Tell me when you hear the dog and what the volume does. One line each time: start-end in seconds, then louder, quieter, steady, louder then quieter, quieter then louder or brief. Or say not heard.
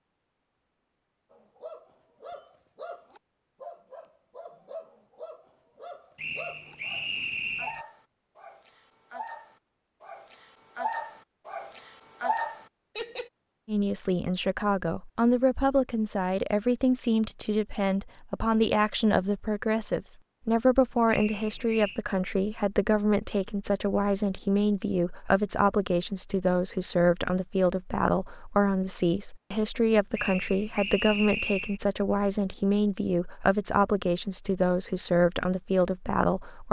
1.3-13.3 louder.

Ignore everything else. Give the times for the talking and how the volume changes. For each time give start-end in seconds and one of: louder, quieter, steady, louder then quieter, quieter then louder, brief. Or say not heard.
13.7-36.6 steady.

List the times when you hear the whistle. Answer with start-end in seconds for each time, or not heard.
6.2-7.8, 21.1-22.0, 30.1-31.8.